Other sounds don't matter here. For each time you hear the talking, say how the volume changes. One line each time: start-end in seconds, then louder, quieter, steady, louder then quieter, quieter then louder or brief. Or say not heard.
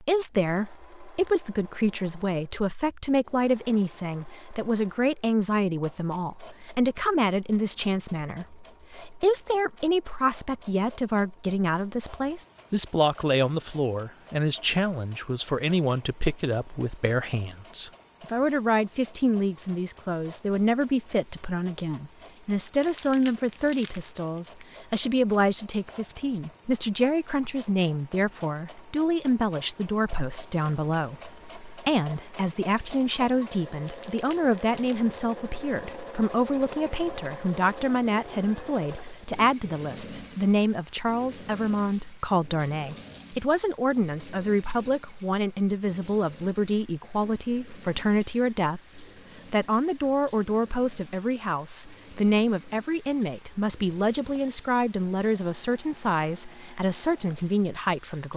0.0-58.3 steady.